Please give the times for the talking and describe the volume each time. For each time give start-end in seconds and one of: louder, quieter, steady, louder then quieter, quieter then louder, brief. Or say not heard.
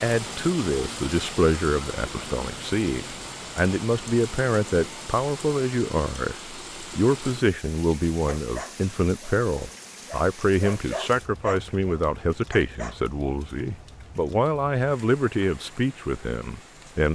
0.0-17.1 steady.